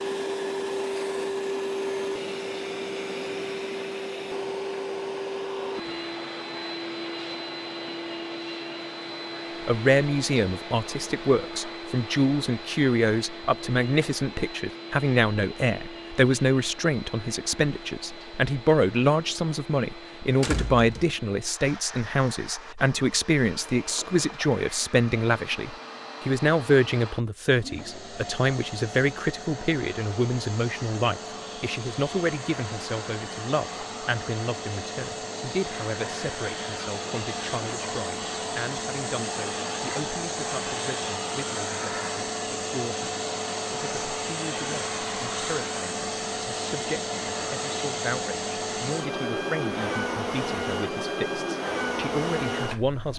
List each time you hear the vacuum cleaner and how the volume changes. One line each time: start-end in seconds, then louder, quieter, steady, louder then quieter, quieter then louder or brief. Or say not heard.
0.0-53.1 quieter then louder.